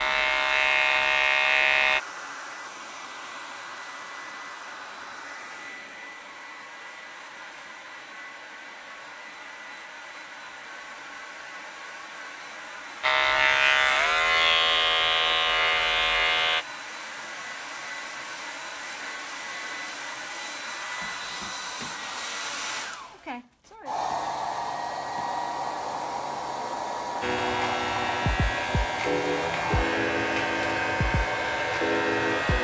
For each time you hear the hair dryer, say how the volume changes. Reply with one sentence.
You can hear the hair dryer from 0.0 to 32.5 s, getting louder.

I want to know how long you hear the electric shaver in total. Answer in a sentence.
You can hear the electric shaver for 11 seconds altogether.